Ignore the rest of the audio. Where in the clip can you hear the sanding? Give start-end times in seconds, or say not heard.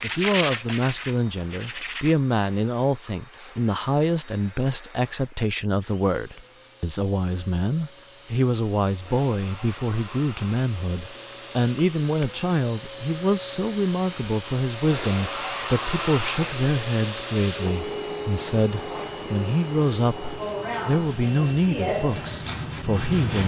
0.0-2.2, 18.7-23.4.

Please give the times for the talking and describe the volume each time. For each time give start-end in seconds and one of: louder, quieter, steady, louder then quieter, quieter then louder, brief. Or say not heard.
0.0-23.4 steady.